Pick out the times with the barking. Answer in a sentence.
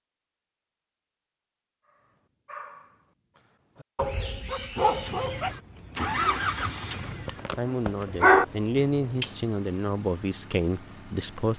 You can hear the barking from 2.5 to 9.3 s.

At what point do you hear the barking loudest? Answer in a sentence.
The volume of the barking peaks at 8 seconds.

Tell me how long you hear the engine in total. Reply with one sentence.
You can hear the engine for 7 seconds altogether.